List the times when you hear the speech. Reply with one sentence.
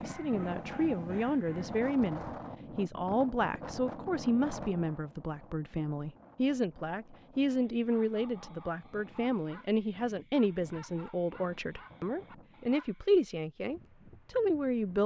The speech can be heard from 0.0 to 15.0 s.